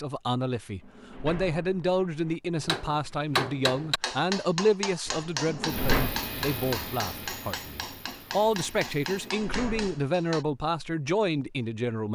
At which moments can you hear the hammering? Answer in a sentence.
You can hear the hammering from 2.6 to 10.4 s.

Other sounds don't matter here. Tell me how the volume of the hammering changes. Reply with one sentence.
The volume of the hammering goes down.